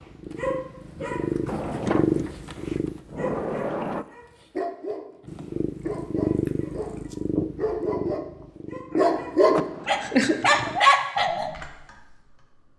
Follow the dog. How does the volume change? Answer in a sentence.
The volume of the dog goes up.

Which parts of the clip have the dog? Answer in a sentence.
You can hear the dog from 0.3 to 11.5 s.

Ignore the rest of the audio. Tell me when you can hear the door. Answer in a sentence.
The door can be heard from 1.4 to 4.0 s and from 9.5 to 10.3 s.